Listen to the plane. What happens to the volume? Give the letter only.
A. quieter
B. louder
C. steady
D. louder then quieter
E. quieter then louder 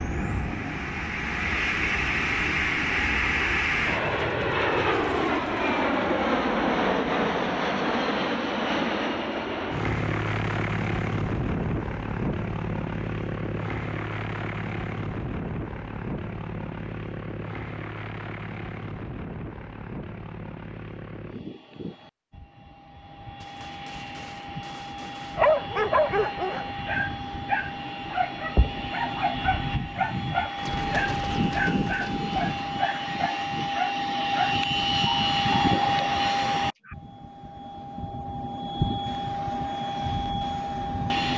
E.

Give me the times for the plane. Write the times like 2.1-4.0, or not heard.
0.0-41.3.